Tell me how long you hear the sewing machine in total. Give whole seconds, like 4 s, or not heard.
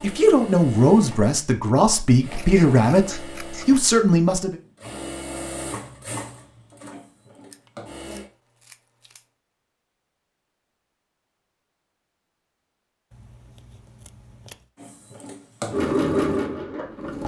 11 s.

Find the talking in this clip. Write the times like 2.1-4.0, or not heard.
0.0-4.5.